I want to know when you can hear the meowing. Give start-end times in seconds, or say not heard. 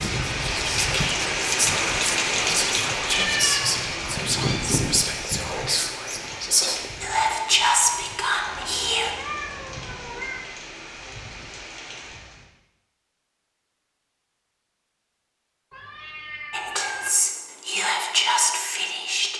3.1-4.7, 8.4-10.4, 15.7-17.1.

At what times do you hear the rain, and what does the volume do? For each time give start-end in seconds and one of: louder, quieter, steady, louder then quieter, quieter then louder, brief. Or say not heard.
0.0-12.5 quieter.